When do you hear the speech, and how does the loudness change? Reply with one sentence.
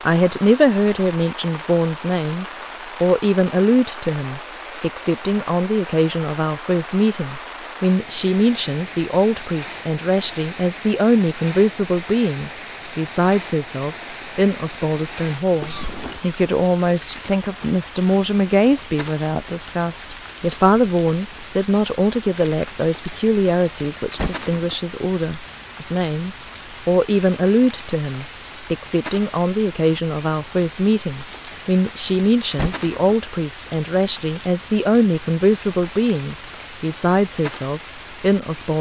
The speech can be heard from 0.1 to 38.7 s, at a steady volume.